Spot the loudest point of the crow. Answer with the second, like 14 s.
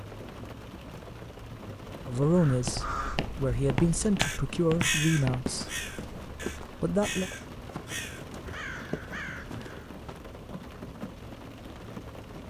5 s.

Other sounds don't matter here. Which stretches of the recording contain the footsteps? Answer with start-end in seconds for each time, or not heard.
2.5-10.2.